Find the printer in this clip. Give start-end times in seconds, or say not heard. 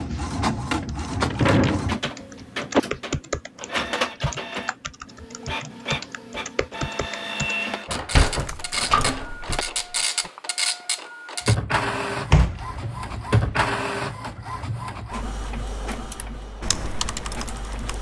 0.0-17.9.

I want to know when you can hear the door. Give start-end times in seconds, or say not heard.
0.8-2.8, 7.8-9.6, 12.3-13.7.